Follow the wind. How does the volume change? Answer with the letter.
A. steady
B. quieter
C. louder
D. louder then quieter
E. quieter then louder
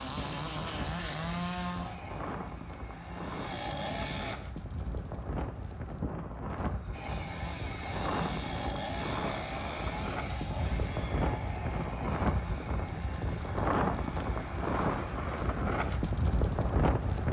C.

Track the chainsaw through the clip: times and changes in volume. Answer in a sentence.
The chainsaw can be heard from 0.0 to 4.3 s, getting quieter then louder; and from 6.9 to 15.4 s, getting quieter.